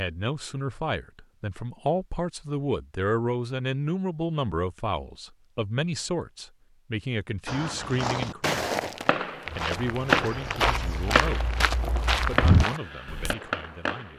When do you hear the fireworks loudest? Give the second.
10 s.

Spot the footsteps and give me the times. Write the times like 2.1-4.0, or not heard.
7.5-13.3.